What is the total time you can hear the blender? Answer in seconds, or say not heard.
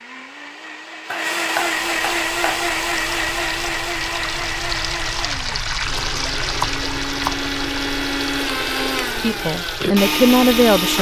11 s.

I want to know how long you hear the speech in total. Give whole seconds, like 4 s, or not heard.
2 s.